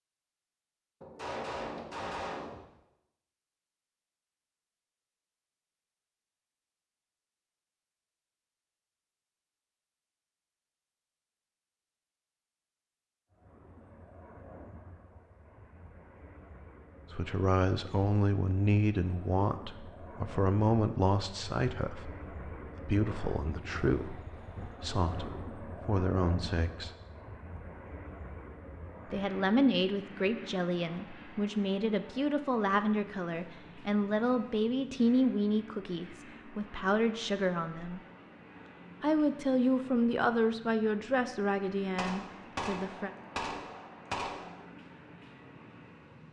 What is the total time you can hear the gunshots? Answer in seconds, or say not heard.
4 s.